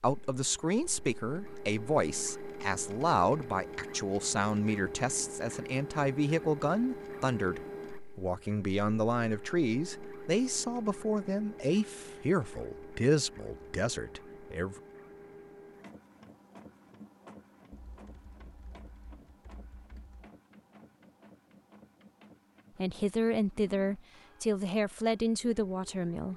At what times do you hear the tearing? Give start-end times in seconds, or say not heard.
not heard.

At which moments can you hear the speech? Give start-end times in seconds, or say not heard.
0.0-14.8, 22.8-26.3.